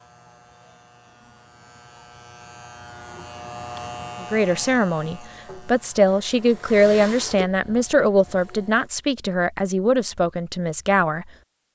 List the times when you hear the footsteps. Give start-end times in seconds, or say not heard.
not heard.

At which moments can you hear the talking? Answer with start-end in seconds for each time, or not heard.
4.2-11.7.